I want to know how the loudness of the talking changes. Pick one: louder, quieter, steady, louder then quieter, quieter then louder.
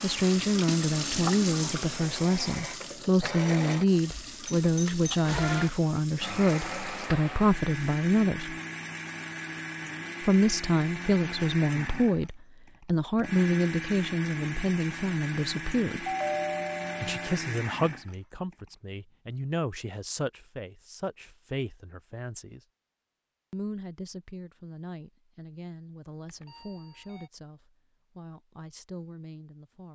quieter.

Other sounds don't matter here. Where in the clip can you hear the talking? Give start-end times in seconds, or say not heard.
0.0-8.6, 10.2-16.1, 17.0-22.6, 23.5-29.9.